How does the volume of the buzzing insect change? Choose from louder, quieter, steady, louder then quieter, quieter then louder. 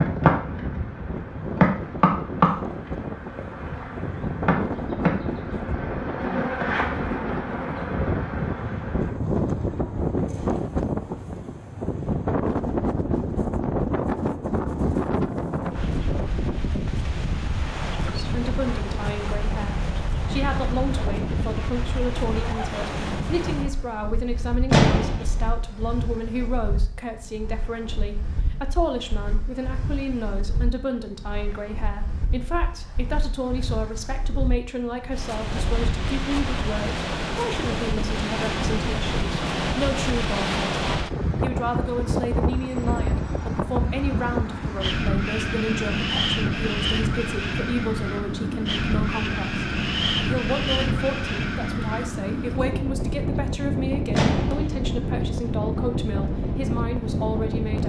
quieter.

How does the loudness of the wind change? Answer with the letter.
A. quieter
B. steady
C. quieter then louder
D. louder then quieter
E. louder
C.